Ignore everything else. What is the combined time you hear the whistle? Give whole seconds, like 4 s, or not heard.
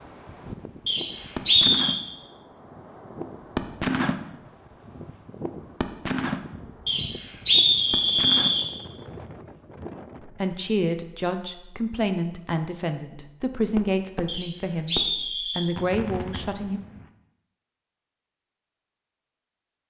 4 s.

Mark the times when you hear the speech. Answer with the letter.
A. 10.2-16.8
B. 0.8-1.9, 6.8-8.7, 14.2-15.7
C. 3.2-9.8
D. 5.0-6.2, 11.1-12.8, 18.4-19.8
A.